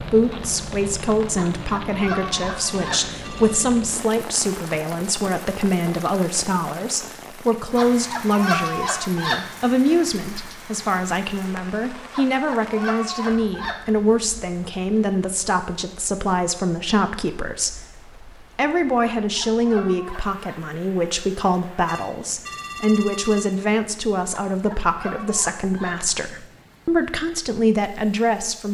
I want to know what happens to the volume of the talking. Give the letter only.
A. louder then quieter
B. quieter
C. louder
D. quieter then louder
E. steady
E.